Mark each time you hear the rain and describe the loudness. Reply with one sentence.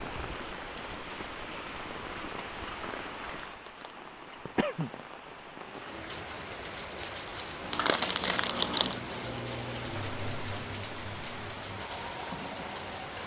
You can hear the rain from 0.0 to 13.2 s, at a steady volume.